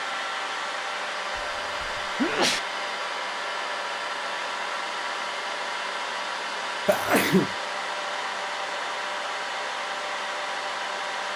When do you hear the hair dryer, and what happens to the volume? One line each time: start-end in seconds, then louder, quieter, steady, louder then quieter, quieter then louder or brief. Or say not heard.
0.0-11.3 steady.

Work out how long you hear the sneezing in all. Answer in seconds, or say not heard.
2 s.